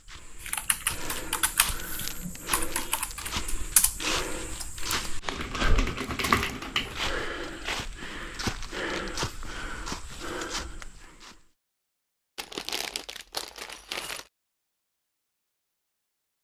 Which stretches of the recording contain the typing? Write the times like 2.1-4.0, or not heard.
0.4-7.0.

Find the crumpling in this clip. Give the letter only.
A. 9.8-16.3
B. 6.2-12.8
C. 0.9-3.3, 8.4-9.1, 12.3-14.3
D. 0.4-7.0
C.